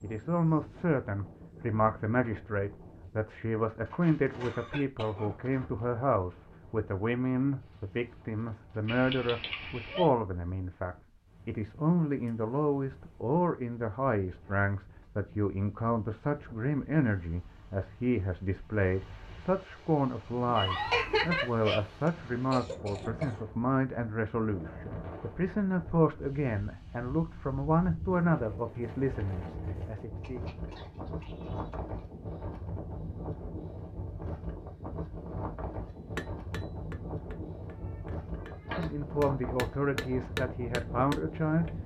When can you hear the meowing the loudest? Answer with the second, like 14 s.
21 s.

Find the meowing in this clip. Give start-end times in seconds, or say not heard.
8.8-10.1, 20.4-21.8, 37.9-38.9.